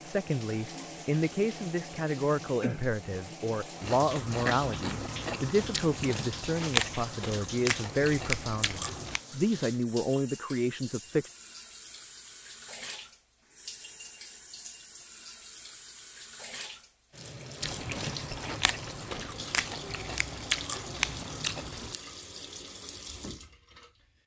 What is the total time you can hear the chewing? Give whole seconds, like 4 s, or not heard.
10 s.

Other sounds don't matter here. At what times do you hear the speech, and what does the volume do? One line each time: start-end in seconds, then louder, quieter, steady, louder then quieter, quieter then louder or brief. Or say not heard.
0.0-11.3 steady.